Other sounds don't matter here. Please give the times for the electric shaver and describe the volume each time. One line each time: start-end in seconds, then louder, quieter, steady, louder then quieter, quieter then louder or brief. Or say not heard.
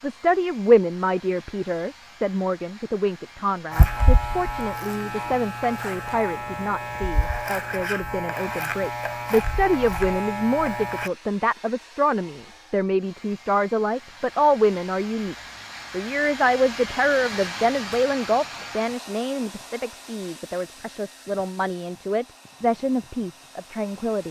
3.7-11.1 steady.